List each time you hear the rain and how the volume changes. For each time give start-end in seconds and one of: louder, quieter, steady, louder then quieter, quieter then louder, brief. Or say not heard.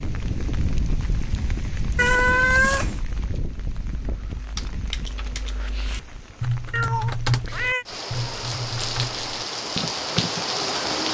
0.0-11.0 quieter then louder.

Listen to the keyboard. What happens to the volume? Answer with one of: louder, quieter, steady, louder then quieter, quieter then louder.
louder then quieter.